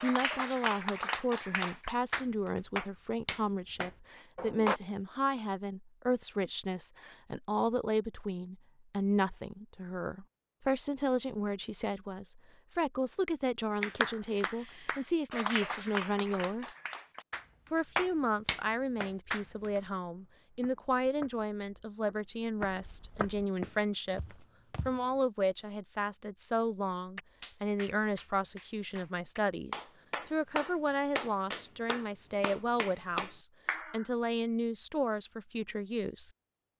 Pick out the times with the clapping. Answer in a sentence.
The clapping can be heard from 0.0 to 4.8 s, from 13.8 to 19.8 s and from 27.1 to 34.0 s.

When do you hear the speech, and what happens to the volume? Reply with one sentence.
The speech can be heard from 0.0 to 16.6 s, at a steady volume; and from 17.7 to 36.3 s, at a steady volume.